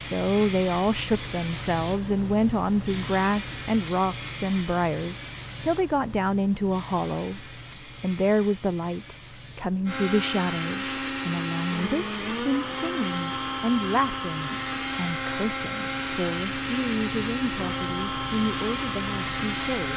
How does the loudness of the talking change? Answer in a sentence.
The loudness of the talking goes down.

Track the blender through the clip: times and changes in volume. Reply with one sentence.
You can hear the blender from 9.8 to 19.9 s, at a steady volume.